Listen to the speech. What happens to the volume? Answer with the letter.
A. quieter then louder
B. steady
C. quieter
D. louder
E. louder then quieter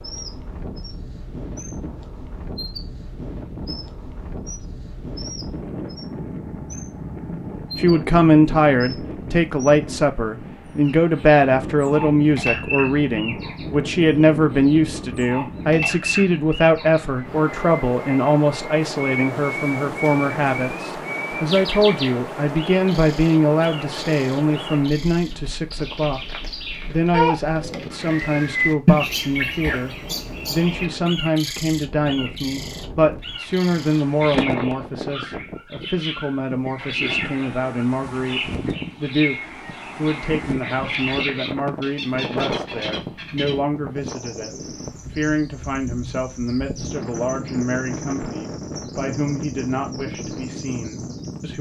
C.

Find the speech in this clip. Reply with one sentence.
You can hear the speech from 7.8 to 51.5 s.